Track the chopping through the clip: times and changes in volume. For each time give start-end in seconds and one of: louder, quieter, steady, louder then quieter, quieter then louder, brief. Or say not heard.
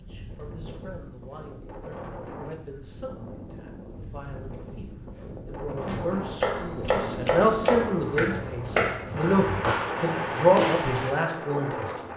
5.8-11.2 steady.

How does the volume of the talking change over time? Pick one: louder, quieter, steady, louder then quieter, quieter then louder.
louder.